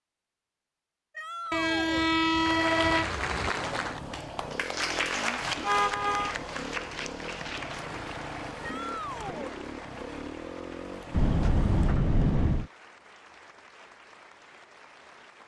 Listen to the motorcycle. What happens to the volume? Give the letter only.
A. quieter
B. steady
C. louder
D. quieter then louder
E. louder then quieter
B.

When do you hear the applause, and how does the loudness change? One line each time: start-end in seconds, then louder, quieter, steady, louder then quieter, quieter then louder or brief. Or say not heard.
2.4-15.4 quieter.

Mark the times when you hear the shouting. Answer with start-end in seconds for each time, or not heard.
1.1-2.1, 8.6-9.6.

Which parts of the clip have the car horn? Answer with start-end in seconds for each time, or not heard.
1.5-3.5, 5.6-6.3, 11.1-12.7.